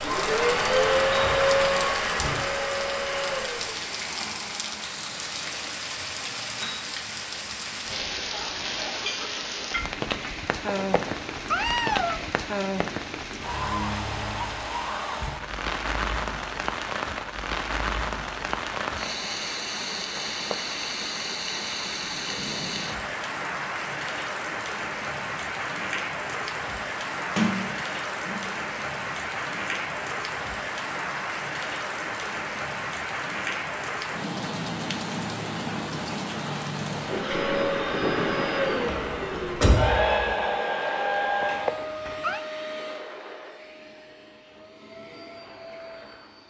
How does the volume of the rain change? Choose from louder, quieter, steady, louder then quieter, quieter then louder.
steady.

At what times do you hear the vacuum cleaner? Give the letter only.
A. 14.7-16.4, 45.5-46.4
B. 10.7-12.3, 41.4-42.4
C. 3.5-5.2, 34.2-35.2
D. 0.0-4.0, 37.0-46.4
D.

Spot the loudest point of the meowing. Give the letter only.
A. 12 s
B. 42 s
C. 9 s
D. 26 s
A.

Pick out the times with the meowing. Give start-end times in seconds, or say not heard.
10.7-12.3, 41.4-42.4.